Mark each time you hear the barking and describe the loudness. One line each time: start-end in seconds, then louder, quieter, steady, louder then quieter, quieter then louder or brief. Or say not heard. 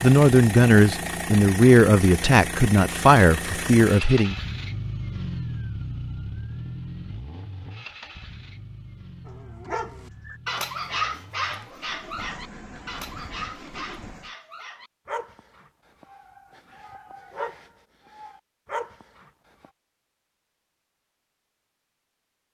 9.2-19.7 quieter then louder.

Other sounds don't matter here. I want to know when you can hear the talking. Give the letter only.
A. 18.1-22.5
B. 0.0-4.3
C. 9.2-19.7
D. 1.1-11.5
B.